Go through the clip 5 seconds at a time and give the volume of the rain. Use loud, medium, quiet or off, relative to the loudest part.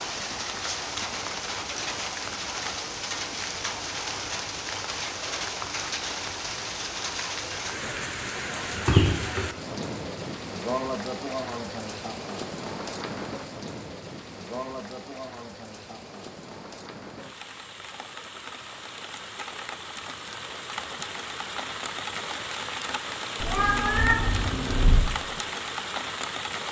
loud, loud, loud, medium, loud, loud.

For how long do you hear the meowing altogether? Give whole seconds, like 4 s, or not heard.
2 s.